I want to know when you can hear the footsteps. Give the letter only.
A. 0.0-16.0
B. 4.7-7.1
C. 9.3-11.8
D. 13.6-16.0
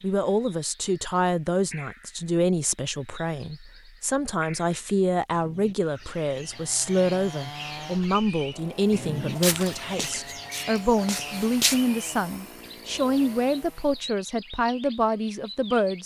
C.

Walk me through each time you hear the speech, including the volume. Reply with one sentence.
You can hear the speech from 0.0 to 16.0 s, at a steady volume.